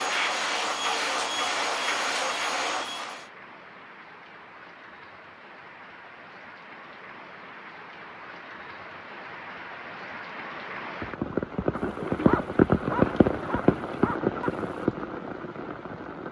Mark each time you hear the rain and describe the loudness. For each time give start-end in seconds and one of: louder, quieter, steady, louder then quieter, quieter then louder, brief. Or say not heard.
0.0-16.2 louder.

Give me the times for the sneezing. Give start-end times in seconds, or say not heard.
not heard.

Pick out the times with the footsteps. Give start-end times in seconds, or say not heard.
not heard.